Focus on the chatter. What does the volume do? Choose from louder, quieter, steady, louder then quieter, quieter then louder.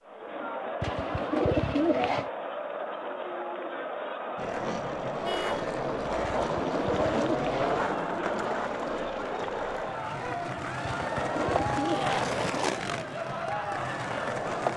steady.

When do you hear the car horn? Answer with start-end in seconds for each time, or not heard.
5.2-5.7.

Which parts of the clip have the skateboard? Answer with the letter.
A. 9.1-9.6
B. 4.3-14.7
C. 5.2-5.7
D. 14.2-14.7
B.